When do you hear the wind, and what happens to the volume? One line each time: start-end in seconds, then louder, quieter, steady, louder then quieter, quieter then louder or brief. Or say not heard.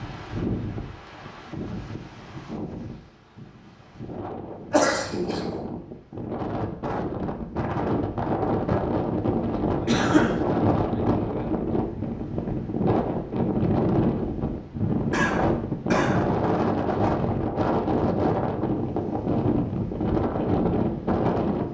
0.0-21.6 louder.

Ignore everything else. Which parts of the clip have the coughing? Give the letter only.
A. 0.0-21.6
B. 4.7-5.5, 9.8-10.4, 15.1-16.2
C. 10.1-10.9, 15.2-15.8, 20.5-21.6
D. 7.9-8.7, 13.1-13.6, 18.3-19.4
B.